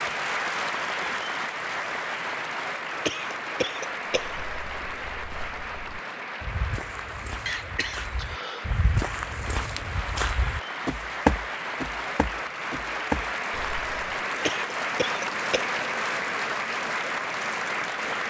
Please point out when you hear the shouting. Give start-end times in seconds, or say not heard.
not heard.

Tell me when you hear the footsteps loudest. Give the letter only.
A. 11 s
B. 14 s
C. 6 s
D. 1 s
A.